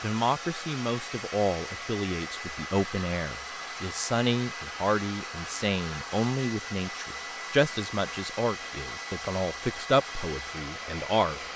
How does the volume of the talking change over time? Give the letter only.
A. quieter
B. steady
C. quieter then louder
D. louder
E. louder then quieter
B.